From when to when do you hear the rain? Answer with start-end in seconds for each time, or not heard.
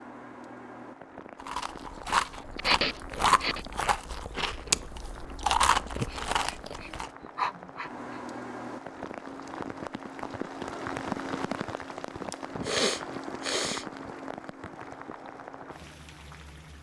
0.0-16.7.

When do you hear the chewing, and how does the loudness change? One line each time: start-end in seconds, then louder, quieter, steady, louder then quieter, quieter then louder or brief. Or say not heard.
1.4-7.1 steady.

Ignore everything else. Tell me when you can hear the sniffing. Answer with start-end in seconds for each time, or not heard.
2.1-3.6, 6.0-8.3, 12.3-13.8.